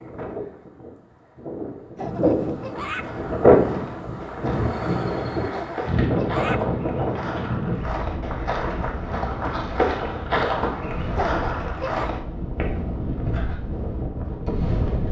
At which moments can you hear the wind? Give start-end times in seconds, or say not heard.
0.0-15.0.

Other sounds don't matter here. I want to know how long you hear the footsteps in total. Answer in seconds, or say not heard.
11 s.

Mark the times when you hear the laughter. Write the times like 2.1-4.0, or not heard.
1.9-3.1, 5.5-6.7, 11.2-12.1.